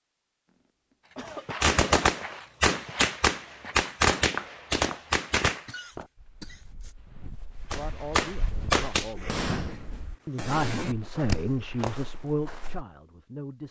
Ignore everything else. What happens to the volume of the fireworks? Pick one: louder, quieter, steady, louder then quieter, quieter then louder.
quieter.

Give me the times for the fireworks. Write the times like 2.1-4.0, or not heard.
1.2-5.7, 7.7-12.1.